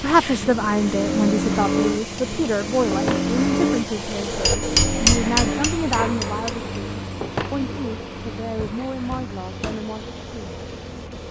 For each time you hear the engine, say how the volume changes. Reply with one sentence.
You can hear the engine from 0.2 to 11.2 s, getting quieter.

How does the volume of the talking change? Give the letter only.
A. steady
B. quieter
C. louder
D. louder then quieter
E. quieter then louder
B.